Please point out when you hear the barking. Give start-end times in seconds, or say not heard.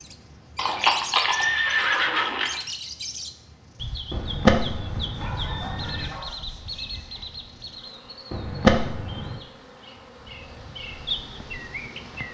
5.2-7.3.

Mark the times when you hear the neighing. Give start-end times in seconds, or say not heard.
0.6-2.5, 4.1-6.2, 8.3-9.4.